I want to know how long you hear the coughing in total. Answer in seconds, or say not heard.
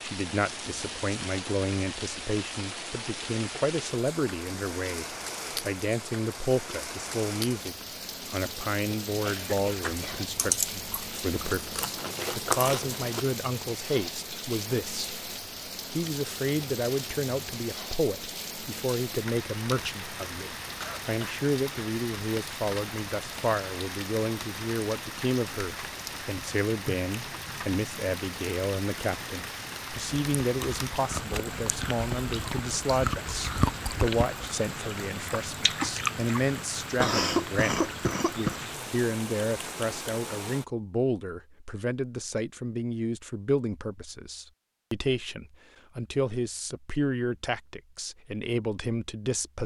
3 s.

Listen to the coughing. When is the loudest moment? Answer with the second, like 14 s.
37 s.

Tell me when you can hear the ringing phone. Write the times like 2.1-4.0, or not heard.
not heard.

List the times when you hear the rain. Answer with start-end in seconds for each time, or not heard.
0.0-40.6.